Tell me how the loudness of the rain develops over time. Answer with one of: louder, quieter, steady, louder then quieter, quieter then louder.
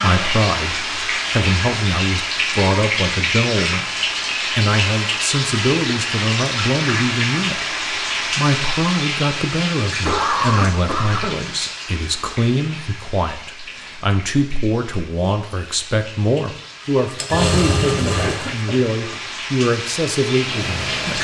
quieter then louder.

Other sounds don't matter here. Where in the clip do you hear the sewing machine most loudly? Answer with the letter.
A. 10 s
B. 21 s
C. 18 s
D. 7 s
C.